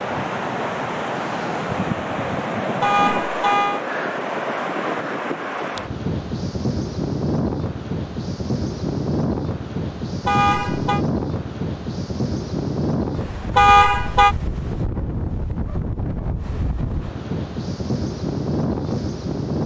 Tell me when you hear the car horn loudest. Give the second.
14 s.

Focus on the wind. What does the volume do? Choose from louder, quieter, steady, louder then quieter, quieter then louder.
steady.